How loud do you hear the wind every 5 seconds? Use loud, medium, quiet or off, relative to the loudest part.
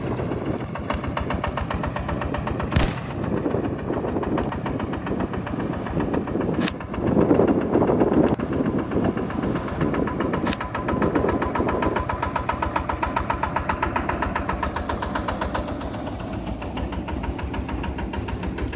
medium, loud, loud, off.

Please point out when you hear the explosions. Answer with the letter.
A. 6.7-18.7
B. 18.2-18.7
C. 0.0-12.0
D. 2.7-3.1
D.